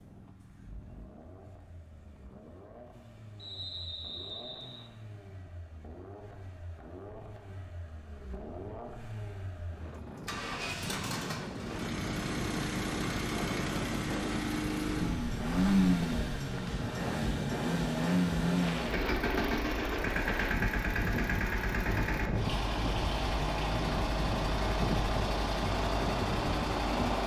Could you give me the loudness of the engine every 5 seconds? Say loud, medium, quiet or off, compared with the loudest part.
quiet, quiet, medium, loud, loud, loud.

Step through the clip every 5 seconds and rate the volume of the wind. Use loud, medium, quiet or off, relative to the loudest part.
quiet, quiet, loud, loud, loud, loud.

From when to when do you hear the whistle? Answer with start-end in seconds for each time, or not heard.
3.4-4.9.